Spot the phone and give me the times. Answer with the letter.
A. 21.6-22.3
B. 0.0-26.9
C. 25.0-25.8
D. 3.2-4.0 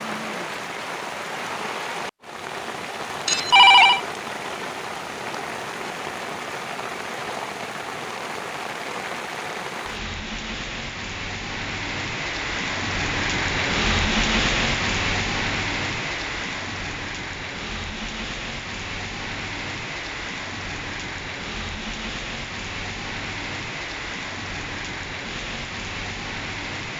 D.